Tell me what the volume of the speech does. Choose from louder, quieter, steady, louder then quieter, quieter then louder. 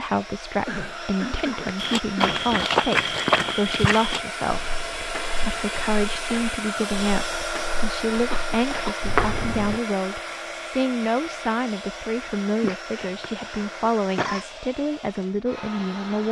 steady.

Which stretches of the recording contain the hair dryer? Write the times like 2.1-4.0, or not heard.
0.0-16.2.